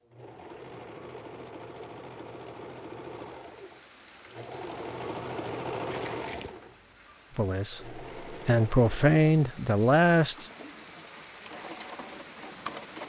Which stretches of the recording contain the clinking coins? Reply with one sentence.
The clinking coins can be heard from 5.9 to 6.7 s.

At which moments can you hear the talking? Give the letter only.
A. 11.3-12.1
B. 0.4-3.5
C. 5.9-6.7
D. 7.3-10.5
D.